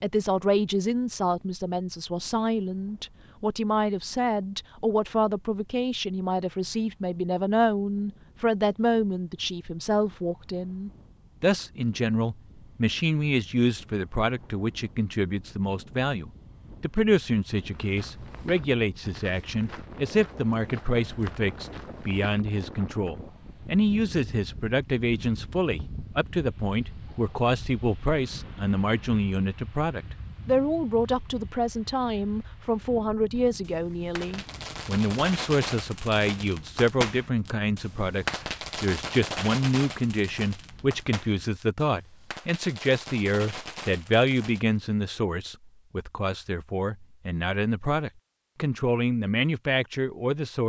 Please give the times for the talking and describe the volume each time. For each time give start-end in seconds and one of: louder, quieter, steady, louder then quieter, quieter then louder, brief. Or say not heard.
0.0-50.6 steady.